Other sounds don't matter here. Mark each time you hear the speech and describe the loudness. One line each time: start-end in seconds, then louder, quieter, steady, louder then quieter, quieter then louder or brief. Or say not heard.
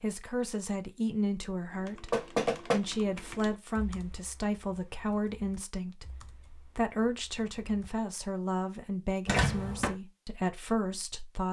0.0-11.4 steady.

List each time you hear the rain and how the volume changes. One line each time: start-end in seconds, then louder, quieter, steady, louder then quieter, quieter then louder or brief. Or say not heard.
not heard.